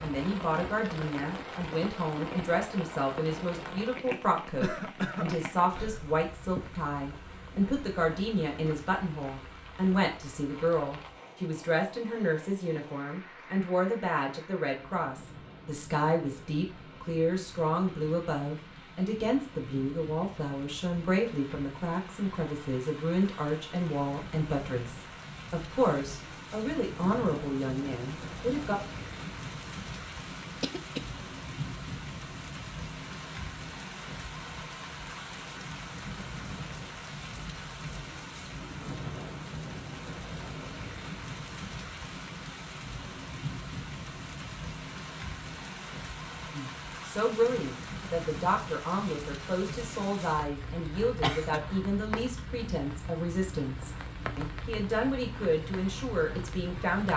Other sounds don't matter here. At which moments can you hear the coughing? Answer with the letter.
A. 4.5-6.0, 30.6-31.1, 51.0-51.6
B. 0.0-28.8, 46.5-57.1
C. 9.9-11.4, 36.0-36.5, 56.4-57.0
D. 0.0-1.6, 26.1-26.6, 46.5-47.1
A.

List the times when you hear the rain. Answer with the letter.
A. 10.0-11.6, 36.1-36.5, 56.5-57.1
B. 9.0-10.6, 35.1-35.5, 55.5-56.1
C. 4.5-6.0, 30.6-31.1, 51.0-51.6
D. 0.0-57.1
D.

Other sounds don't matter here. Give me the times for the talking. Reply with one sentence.
You can hear the talking from 0.0 to 28.8 s and from 46.5 to 57.1 s.